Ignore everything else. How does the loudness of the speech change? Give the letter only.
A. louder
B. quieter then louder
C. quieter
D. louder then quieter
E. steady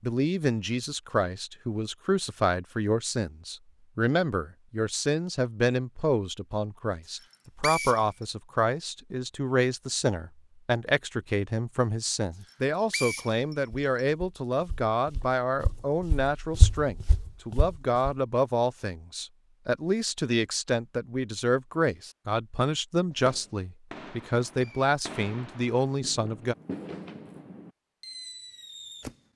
E.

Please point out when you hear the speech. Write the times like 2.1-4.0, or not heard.
0.0-26.6.